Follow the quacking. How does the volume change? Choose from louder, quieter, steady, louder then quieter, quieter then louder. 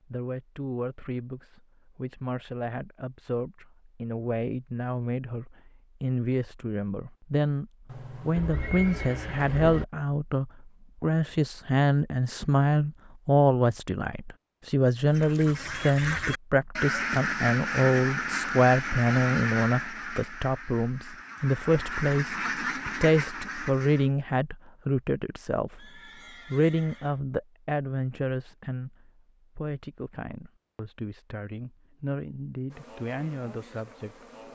quieter then louder.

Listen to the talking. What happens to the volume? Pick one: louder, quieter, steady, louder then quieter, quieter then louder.
louder then quieter.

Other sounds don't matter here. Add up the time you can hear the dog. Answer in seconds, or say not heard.
not heard.